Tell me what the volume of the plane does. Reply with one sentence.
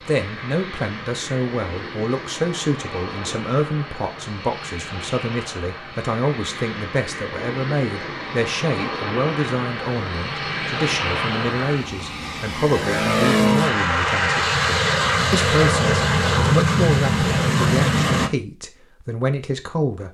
The volume of the plane goes up.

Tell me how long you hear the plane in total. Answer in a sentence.
You can hear the plane for 18 seconds altogether.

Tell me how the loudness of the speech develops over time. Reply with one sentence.
The volume of the speech stays about the same.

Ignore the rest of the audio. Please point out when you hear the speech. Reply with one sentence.
You can hear the speech from 0.0 to 20.0 s.